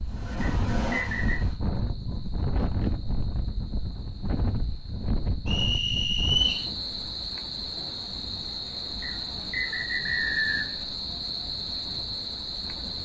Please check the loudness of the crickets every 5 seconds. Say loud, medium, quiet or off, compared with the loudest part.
quiet, loud, loud.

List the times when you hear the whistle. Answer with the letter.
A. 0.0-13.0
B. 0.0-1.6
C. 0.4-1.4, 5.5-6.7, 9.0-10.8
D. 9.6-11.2
C.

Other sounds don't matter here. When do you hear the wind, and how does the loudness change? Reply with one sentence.
The wind can be heard from 0.0 to 13.0 s, getting quieter.